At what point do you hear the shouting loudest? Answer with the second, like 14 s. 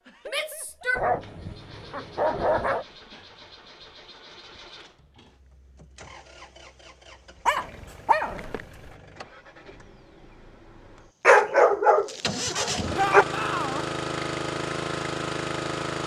13 s.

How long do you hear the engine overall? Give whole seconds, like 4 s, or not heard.
16 s.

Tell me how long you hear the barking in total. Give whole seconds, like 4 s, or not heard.
5 s.